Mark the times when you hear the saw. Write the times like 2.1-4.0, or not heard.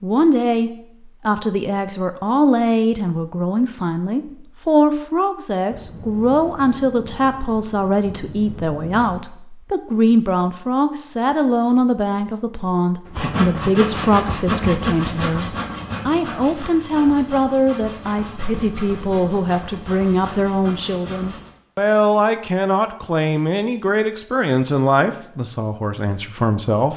13.1-21.5.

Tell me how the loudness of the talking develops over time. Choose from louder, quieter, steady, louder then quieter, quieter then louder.
steady.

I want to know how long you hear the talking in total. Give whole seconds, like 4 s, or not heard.
27 s.